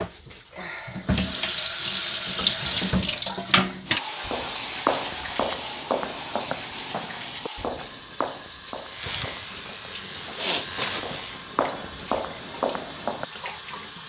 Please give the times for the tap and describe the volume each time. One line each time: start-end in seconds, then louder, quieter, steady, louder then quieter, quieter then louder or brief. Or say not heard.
0.0-14.0 quieter.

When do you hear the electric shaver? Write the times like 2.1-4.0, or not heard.
8.9-11.4.